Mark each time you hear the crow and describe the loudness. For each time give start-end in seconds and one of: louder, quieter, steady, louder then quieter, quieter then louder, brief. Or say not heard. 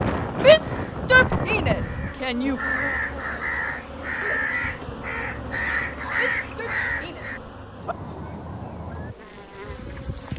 0.0-7.4 louder.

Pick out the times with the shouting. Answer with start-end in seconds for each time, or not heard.
0.3-2.6, 6.2-8.4.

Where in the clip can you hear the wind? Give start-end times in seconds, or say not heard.
0.0-6.5.